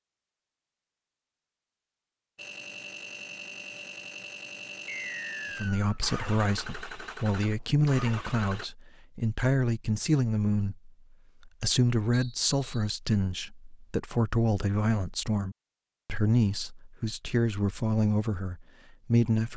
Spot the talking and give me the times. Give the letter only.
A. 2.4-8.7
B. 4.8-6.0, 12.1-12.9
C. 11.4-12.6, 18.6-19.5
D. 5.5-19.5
D.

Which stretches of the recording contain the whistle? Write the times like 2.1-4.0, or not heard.
4.8-6.0, 12.1-12.9.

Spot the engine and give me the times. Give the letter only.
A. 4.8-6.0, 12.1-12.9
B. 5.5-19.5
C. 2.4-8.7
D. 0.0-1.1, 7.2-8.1
C.